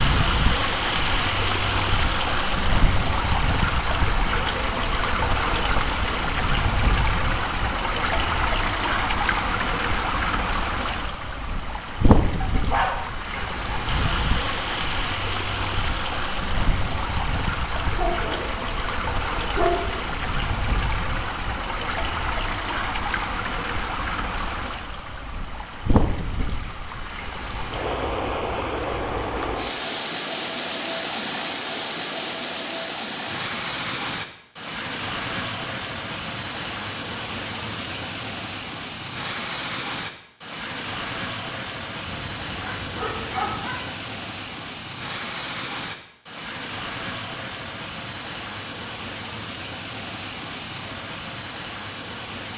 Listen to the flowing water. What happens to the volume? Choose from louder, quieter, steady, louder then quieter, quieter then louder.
quieter.